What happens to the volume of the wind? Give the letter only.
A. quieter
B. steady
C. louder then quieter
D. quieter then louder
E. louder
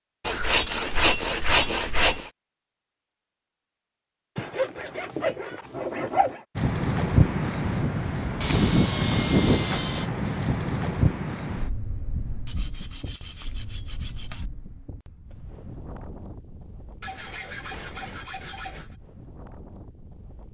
A.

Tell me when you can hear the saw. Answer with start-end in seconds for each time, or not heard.
0.2-2.3, 4.3-6.4, 8.4-10.1, 12.4-14.4, 17.0-18.9.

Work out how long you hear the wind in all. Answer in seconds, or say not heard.
14 s.